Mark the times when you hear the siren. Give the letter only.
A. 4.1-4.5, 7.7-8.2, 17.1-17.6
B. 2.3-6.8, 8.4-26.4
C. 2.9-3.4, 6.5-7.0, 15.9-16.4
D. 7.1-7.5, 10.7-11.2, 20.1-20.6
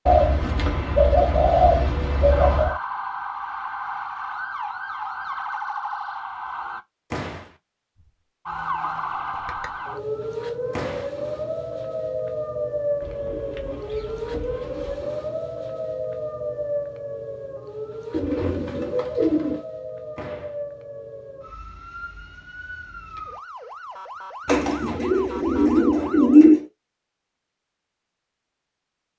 B.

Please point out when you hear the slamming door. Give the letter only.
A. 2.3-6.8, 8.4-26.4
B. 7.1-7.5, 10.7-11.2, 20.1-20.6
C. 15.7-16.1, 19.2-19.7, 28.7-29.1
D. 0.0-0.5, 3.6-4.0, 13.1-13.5
B.